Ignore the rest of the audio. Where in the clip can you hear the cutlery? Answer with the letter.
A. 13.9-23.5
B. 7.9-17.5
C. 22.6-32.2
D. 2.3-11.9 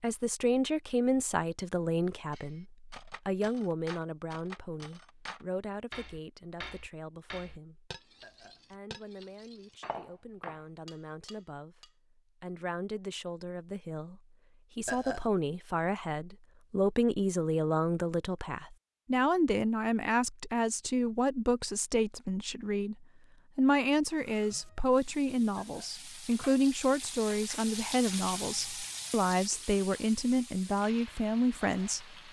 D.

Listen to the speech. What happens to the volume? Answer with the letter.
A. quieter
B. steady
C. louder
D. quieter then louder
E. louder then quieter
D.